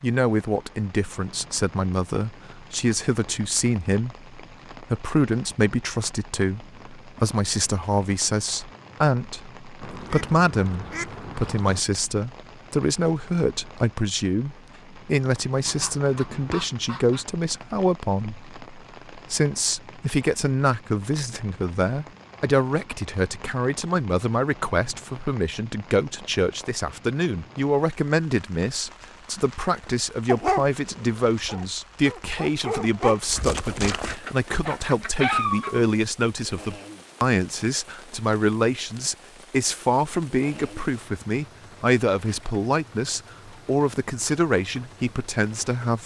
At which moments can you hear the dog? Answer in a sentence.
You can hear the dog from 29.9 to 35.7 s.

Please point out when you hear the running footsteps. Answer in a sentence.
You can't hear the running footsteps here.